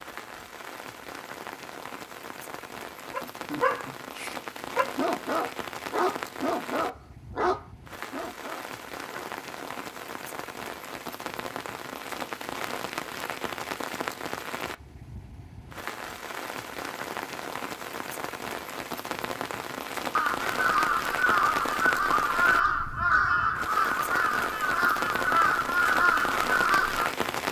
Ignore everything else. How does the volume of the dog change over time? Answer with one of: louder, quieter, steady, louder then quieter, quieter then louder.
quieter.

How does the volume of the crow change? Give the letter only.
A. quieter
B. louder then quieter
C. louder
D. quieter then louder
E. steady
E.